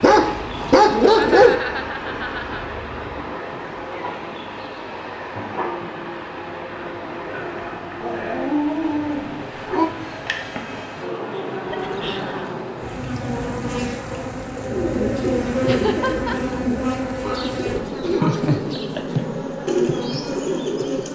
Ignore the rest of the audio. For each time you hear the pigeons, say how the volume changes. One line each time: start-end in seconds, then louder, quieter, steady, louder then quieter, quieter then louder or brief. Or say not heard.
14.4-21.1 steady.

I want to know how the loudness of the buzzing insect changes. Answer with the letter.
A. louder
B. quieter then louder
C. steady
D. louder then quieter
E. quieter
A.